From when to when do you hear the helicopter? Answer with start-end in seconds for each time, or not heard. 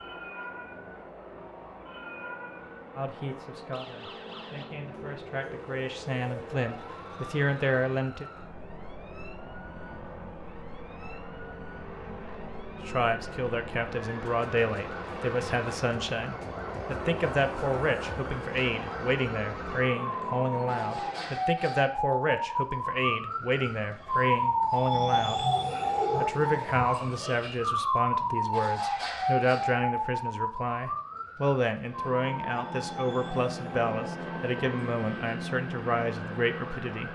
0.0-21.4, 31.8-37.1.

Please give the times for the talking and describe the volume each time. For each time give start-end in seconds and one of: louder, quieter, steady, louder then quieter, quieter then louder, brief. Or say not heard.
3.0-8.2 louder
12.8-25.4 steady
26.1-37.1 steady.